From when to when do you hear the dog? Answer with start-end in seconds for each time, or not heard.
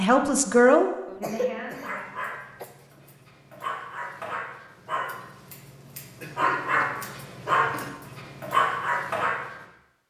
1.8-9.6.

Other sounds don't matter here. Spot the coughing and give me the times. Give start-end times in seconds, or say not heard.
1.1-2.6, 6.2-8.2.